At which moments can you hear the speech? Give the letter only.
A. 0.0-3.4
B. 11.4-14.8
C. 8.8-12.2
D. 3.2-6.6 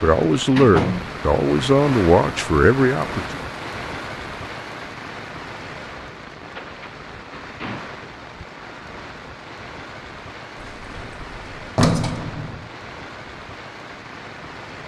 A.